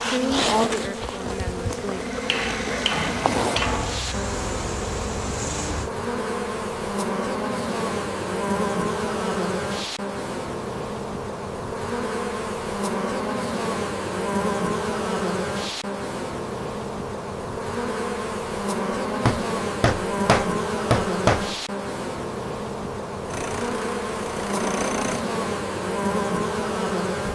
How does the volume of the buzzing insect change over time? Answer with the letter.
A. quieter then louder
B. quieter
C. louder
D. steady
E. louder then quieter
D.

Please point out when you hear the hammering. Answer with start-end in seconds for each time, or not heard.
2.2-4.0, 19.2-21.5.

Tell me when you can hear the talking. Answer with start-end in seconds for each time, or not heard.
0.0-2.0.